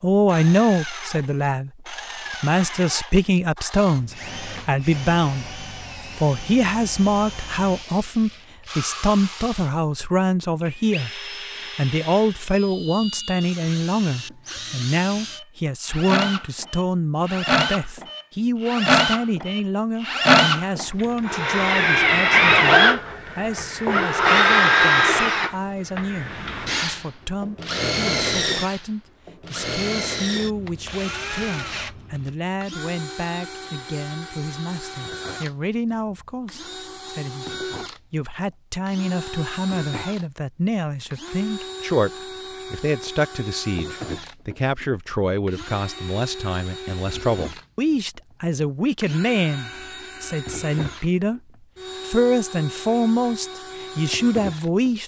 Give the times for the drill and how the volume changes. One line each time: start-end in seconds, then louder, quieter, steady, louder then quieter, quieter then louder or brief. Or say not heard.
0.2-9.7 steady
10.6-55.0 louder then quieter.